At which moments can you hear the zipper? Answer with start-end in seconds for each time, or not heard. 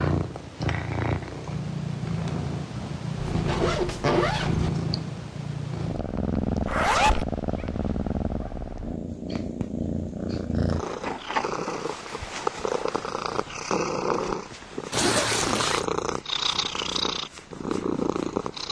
3.2-4.7, 6.7-7.2, 14.9-15.8.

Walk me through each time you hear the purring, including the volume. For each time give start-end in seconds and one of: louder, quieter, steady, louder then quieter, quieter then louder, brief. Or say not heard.
0.0-18.6 steady.